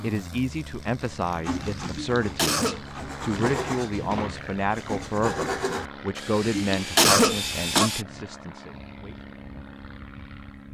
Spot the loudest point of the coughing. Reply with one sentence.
The volume of the coughing peaks at 7 seconds.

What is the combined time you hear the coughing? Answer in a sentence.
You can hear the coughing for 3 seconds altogether.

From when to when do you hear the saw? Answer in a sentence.
You can hear the saw from 1.4 to 8.1 s.